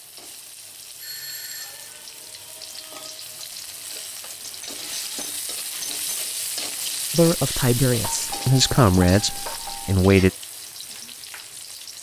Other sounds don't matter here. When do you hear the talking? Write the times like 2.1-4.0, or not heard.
7.1-10.3.